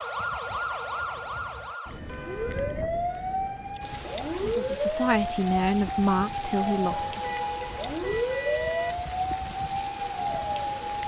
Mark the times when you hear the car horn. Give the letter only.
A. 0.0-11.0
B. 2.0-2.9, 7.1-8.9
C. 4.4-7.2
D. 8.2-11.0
B.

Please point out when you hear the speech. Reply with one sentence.
You can hear the speech from 4.4 to 7.2 s.